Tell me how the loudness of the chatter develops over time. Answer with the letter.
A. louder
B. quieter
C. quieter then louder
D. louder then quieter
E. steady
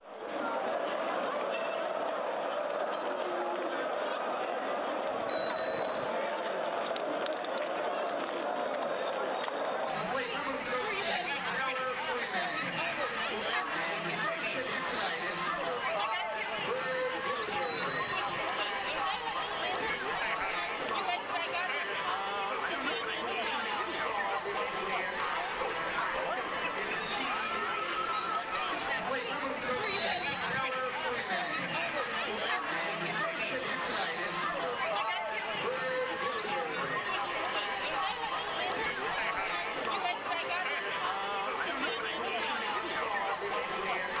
E.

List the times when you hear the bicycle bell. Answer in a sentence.
You can hear the bicycle bell from 5.1 to 6.0 s, from 17.4 to 19.0 s and from 29.6 to 31.2 s.